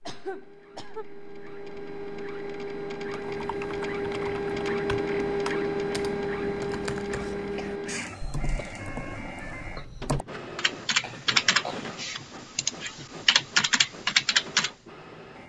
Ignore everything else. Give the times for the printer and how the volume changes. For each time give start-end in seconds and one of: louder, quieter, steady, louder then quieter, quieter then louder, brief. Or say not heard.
0.0-15.4 louder then quieter.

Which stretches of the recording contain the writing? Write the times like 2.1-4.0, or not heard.
not heard.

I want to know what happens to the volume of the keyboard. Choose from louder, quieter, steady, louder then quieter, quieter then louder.
louder.